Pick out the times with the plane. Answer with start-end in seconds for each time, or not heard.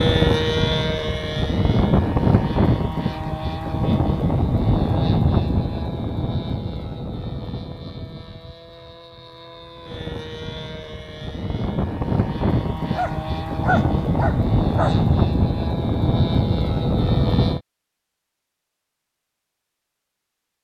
0.0-17.6.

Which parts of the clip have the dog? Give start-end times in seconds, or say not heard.
12.9-15.2.